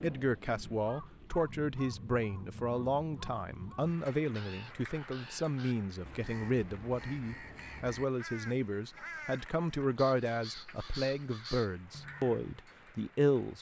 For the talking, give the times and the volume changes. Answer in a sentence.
You can hear the talking from 0.0 to 13.5 s, at a steady volume.